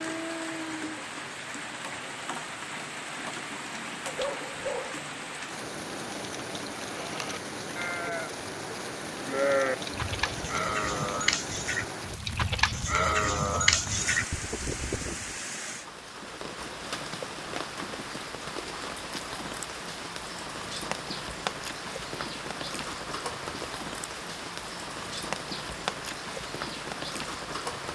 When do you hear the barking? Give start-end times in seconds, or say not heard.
4.2-5.0.